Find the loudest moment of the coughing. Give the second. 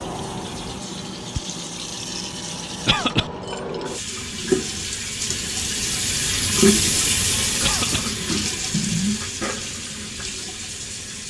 3 s.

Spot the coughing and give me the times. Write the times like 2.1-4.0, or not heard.
2.9-3.3, 7.6-8.1.